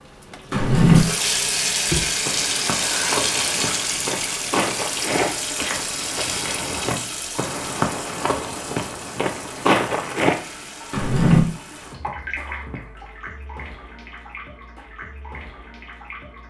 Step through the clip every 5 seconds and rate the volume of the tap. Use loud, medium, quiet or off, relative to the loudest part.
loud, medium, medium, quiet.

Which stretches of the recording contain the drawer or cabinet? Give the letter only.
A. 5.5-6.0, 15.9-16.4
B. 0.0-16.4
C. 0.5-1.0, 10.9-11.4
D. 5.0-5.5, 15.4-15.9
C.